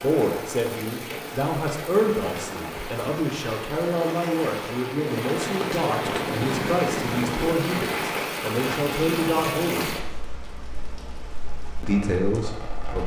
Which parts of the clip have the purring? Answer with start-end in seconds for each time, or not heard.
6.0-7.6.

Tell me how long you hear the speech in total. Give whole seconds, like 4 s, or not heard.
11 s.